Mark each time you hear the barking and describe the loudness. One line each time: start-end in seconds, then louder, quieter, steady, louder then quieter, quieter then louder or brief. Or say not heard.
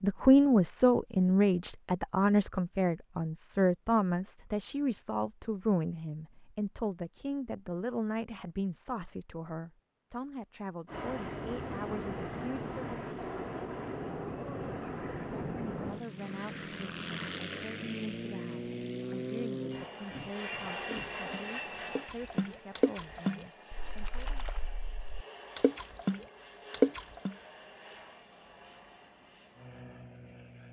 not heard.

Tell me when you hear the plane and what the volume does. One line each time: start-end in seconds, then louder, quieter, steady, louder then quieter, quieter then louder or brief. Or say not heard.
10.8-30.6 quieter.